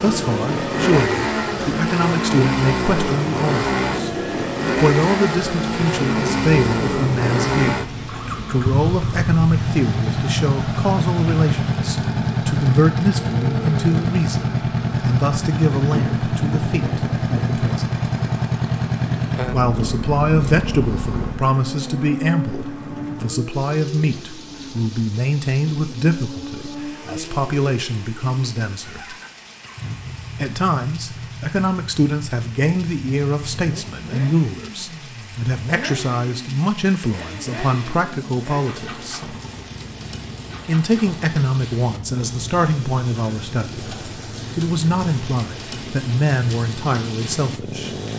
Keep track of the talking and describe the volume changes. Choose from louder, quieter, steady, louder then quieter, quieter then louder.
steady.